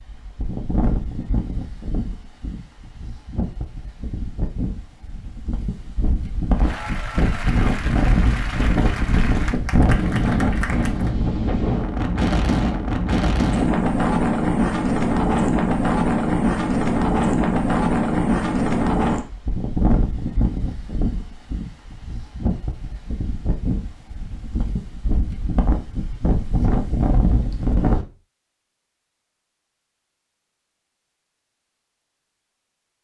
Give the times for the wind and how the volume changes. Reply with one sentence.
The wind can be heard from 0.0 to 28.1 s, getting louder then quieter.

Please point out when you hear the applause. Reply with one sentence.
The applause can be heard from 6.5 to 11.2 s.